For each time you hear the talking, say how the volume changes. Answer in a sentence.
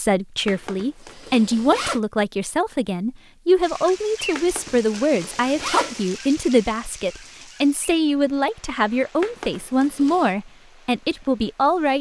You can hear the talking from 0.0 to 11.9 s, at a steady volume.